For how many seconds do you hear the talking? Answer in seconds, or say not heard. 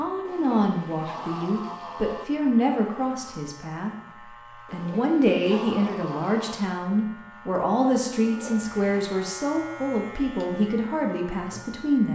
11 s.